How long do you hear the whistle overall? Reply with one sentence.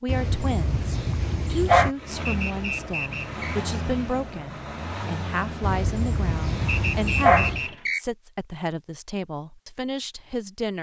The whistle can be heard for 3 seconds in total.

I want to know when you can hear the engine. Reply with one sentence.
You can hear the engine from 1.9 to 7.9 s.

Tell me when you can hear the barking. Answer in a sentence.
The barking can be heard from 0.1 to 1.9 s and from 5.6 to 7.7 s.